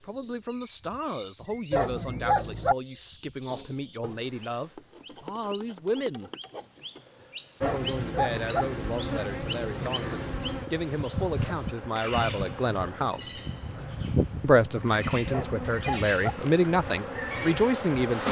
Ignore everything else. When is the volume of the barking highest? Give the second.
2 s.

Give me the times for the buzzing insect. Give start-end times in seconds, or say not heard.
7.6-18.2.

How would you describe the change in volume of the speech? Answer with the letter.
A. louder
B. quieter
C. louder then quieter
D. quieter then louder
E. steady
A.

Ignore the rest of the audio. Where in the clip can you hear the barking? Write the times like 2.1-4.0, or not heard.
1.7-2.8, 7.6-8.7, 15.3-16.1.